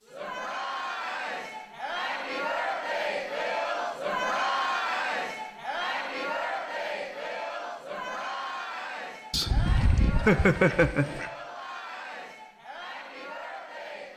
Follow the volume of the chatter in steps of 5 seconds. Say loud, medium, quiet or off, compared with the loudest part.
loud, loud, medium.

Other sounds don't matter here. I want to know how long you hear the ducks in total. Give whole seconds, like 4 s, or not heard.
2 s.